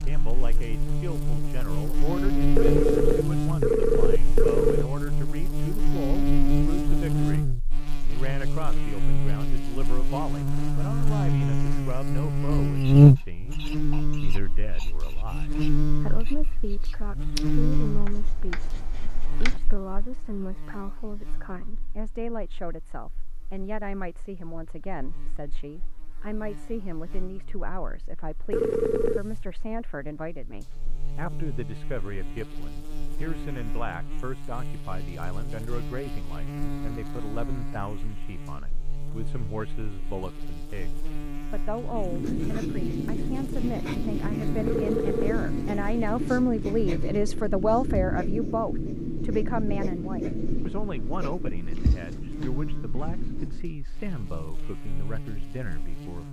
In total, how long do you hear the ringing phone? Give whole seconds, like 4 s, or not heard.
4 s.